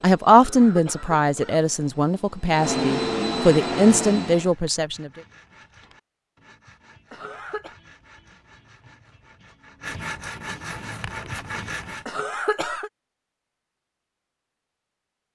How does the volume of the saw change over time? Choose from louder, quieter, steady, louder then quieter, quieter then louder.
louder.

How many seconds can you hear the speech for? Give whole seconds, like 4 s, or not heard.
5 s.